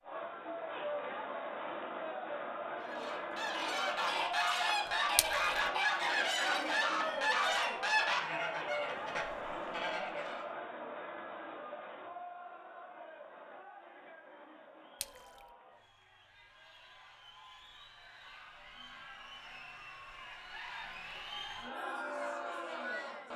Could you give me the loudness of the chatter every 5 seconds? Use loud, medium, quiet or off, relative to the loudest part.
loud, loud, medium, quiet, loud.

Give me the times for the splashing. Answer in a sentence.
You can hear the splashing from 5.2 to 5.6 s and from 15.0 to 15.4 s.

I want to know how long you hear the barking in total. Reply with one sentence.
You can't hear the barking here.